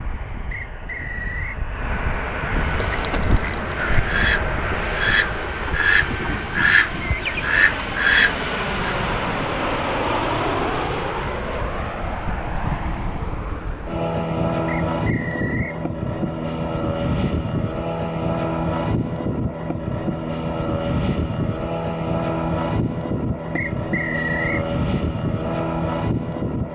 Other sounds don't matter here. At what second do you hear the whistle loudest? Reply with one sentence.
The volume of the whistle peaks at 24 seconds.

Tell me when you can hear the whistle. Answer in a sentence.
The whistle can be heard from 0.5 to 1.6 s, from 14.8 to 15.8 s and from 23.6 to 24.6 s.